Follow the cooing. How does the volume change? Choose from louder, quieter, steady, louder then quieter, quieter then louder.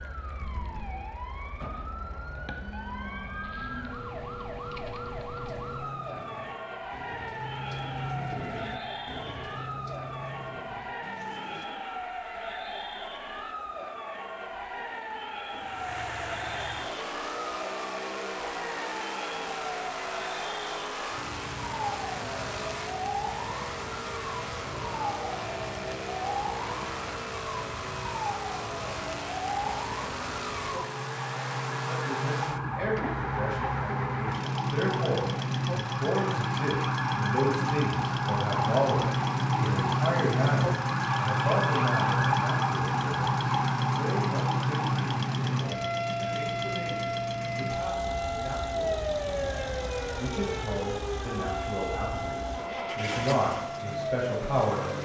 louder then quieter.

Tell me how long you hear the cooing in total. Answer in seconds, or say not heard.
6 s.